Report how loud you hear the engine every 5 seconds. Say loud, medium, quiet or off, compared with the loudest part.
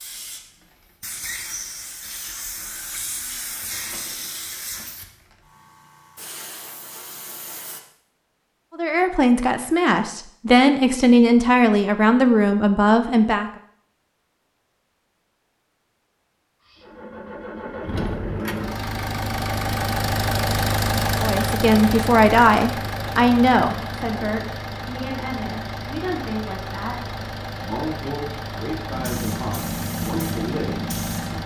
off, off, off, loud, loud, medium, medium.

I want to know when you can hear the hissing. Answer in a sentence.
The hissing can be heard from 0.0 to 7.8 s and from 28.9 to 31.4 s.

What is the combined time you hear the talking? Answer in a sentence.
The talking can be heard for 15 seconds in total.